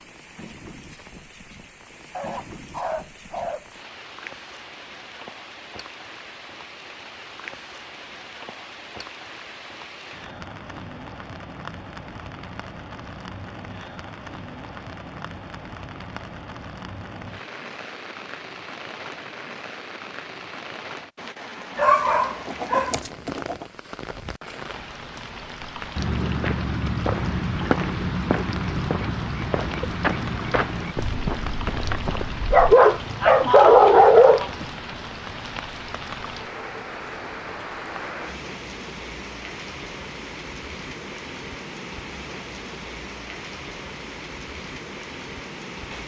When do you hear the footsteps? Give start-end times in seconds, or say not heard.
25.9-32.8.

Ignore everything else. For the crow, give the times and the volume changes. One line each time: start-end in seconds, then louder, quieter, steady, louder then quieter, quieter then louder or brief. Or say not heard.
not heard.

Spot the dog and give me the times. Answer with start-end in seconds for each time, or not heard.
2.1-3.6, 21.8-23.6, 32.5-34.6.